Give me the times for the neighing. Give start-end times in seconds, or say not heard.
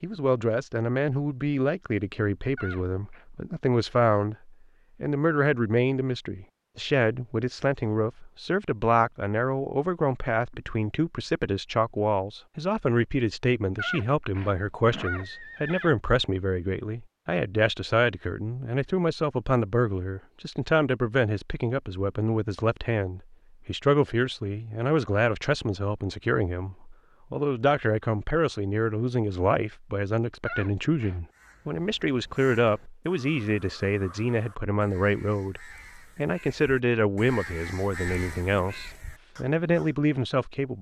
2.5-3.2, 13.8-15.9, 30.4-31.2.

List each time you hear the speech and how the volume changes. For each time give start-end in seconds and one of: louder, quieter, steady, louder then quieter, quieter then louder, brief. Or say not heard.
0.0-40.7 steady.